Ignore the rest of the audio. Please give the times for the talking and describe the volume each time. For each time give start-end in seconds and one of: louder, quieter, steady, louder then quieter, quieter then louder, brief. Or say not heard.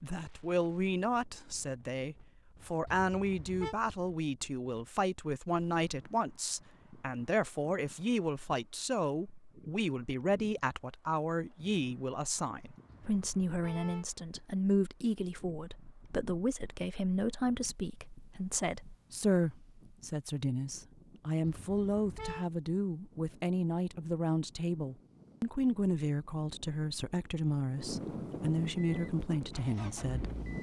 0.0-30.3 steady.